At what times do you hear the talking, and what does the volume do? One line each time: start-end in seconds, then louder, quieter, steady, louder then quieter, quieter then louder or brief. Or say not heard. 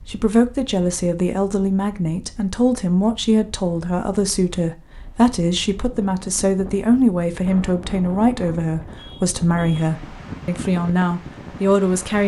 0.0-12.2 steady.